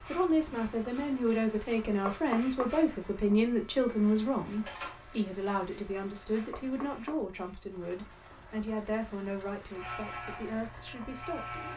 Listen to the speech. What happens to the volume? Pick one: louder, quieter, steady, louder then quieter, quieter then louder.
quieter.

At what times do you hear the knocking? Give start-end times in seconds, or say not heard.
2.0-2.7, 6.5-7.2.